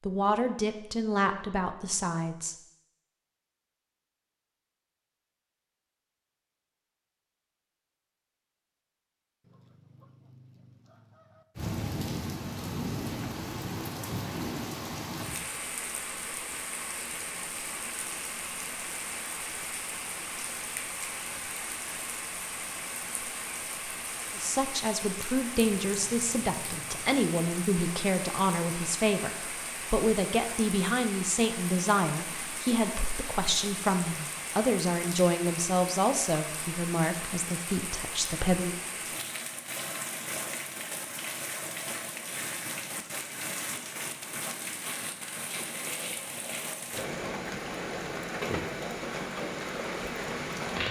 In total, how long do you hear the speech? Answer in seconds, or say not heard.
17 s.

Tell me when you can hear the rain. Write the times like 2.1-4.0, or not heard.
11.6-50.8.